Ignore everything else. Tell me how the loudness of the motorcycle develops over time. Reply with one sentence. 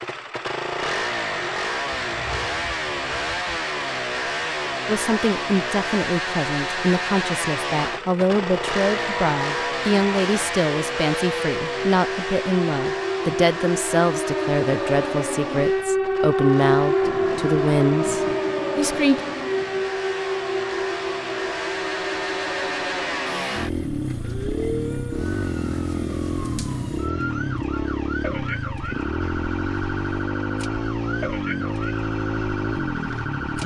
The volume of the motorcycle goes down, then up.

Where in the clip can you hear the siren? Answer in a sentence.
You can hear the siren from 7.8 to 33.6 s.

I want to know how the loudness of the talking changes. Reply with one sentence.
The loudness of the talking stays about the same.